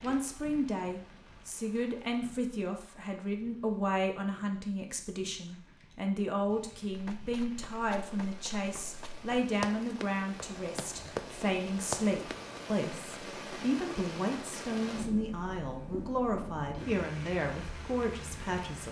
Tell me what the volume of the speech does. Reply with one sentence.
The volume of the speech stays about the same.